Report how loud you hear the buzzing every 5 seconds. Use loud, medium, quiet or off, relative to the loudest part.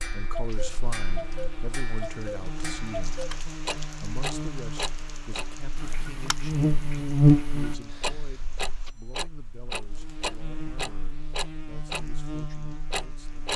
quiet, loud, quiet.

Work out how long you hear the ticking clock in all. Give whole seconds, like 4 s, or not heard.
13 s.